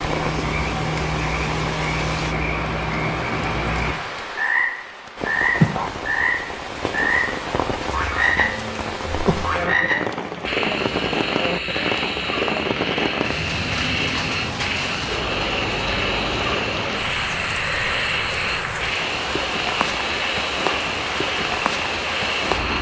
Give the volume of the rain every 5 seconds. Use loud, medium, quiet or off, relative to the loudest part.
medium, loud, loud, loud, loud.